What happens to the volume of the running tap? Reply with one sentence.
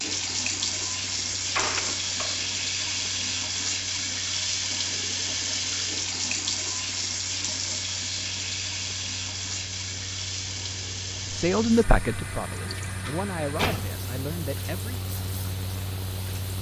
The loudness of the running tap goes down.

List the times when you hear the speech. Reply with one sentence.
You can hear the speech from 11.3 to 14.9 s.